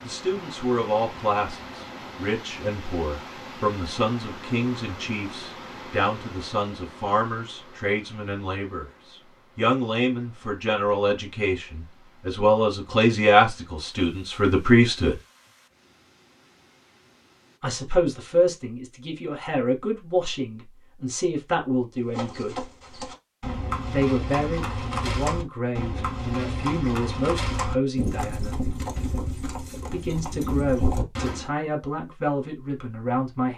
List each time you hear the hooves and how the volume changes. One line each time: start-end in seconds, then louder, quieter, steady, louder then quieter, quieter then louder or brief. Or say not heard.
22.1-31.5 steady.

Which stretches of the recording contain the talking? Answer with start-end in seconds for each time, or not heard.
0.0-15.2, 17.6-22.6, 23.9-28.6, 29.9-33.5.